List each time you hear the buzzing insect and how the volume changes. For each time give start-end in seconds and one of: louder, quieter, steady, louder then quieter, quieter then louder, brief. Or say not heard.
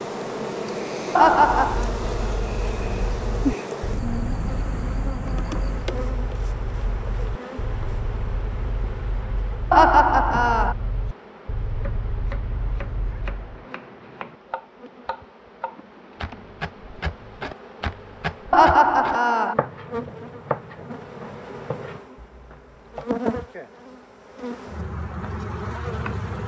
0.0-26.4 quieter then louder.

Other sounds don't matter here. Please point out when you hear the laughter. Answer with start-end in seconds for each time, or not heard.
1.1-1.9, 9.7-10.8, 18.5-19.6.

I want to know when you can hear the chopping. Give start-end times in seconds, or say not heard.
11.8-23.1.